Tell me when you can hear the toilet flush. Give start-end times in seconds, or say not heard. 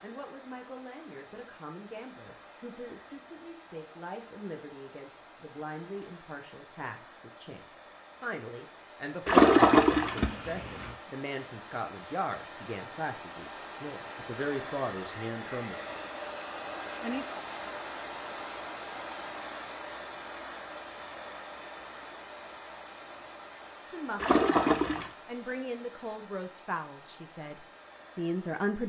9.2-10.9, 24.2-25.1.